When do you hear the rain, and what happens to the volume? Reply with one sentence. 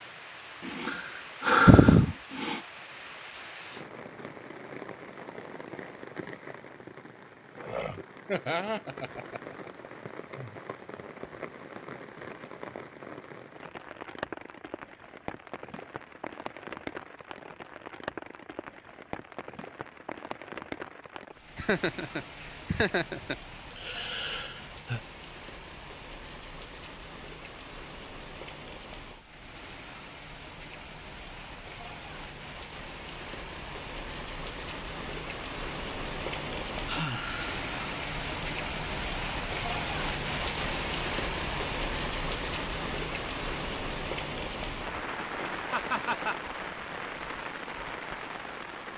You can hear the rain from 0.0 to 48.9 s, getting louder.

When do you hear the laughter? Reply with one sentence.
You can hear the laughter from 8.2 to 9.7 s, from 21.6 to 23.4 s and from 45.6 to 46.4 s.